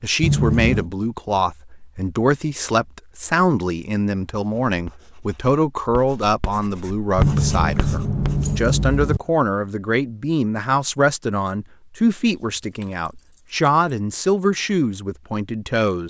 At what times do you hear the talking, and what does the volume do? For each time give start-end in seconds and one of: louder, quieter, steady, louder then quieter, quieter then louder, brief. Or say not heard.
0.0-16.0 steady.